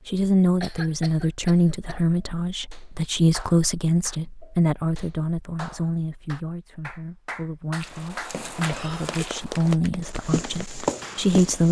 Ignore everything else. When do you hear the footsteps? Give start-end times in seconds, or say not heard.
7.8-11.6.